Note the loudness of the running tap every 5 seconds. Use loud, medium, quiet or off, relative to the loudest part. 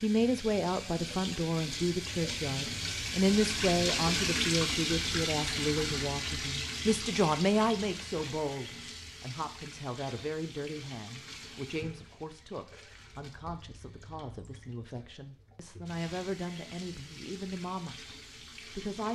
loud, loud, quiet, quiet.